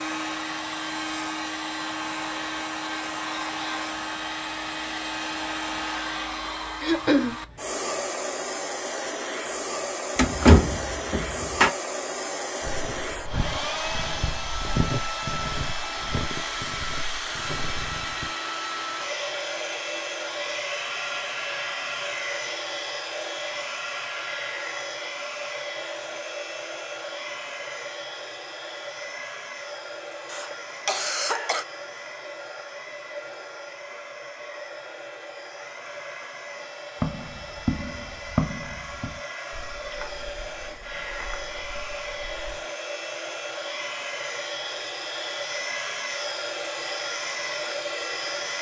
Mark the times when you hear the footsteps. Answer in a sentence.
You can hear the footsteps from 12.6 to 18.3 s and from 37.0 to 42.6 s.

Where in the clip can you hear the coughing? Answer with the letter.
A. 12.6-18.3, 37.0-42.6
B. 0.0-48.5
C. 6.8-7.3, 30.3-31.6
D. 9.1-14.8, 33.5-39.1
C.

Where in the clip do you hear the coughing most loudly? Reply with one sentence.
The loudest moment of the coughing is at 7 seconds.